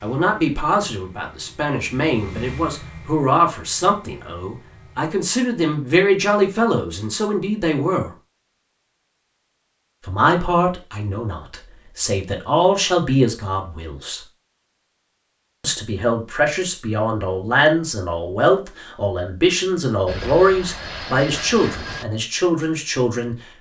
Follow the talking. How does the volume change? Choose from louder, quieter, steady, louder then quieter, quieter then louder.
steady.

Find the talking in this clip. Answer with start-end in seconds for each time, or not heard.
0.0-8.1, 10.1-14.2, 15.6-23.4.